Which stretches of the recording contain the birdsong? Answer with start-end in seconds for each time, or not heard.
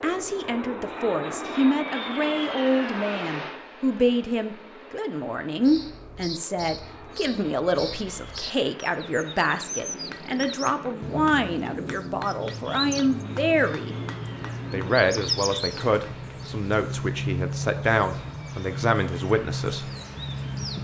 5.6-20.7.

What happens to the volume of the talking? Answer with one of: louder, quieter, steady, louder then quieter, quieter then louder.
steady.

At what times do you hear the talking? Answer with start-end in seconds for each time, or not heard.
0.0-13.9, 14.7-19.9.